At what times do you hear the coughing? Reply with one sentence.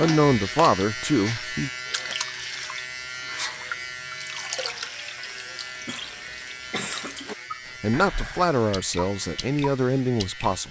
You can hear the coughing from 5.8 to 7.2 s.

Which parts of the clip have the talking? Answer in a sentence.
You can hear the talking from 0.0 to 1.7 s and from 7.8 to 10.6 s.